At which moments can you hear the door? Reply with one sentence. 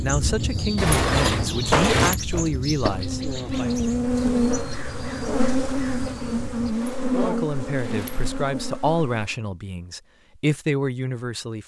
You can hear the door from 0.8 to 2.2 s and from 6.7 to 8.5 s.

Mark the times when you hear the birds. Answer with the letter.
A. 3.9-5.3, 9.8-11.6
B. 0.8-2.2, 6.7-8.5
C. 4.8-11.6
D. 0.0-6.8
D.